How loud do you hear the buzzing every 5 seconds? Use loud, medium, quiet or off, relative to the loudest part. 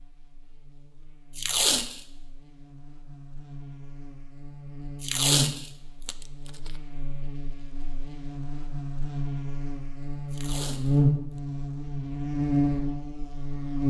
quiet, medium, loud.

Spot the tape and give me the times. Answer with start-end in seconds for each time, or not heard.
1.4-2.0, 5.0-6.7, 10.3-11.0.